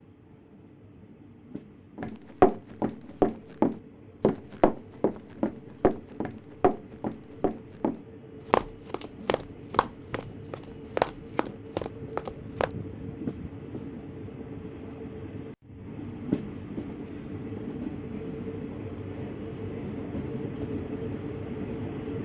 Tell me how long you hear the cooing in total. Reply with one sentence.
You can't hear the cooing here.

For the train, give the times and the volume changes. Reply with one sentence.
You can hear the train from 0.0 to 22.2 s, getting louder.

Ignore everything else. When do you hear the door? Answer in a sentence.
The door can't be heard in this clip.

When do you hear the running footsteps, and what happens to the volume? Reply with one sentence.
You can hear the running footsteps from 1.9 to 12.7 s, getting quieter.